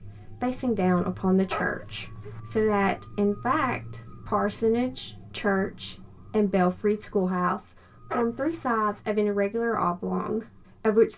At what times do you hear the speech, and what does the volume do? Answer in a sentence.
The speech can be heard from 0.4 to 11.1 s, at a steady volume.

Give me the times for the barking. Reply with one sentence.
The barking can be heard from 1.5 to 2.4 s and from 8.1 to 9.0 s.